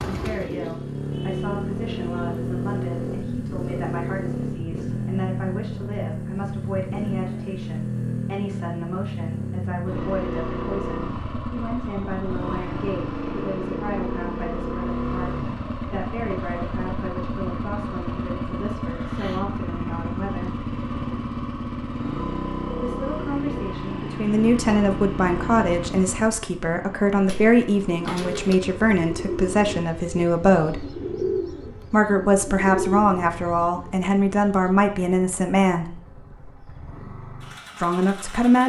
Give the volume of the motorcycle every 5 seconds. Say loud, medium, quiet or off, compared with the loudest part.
loud, loud, loud, loud, loud, medium, quiet, quiet.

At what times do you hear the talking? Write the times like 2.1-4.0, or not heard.
0.1-20.5, 22.8-30.9, 31.9-36.0, 37.8-38.6.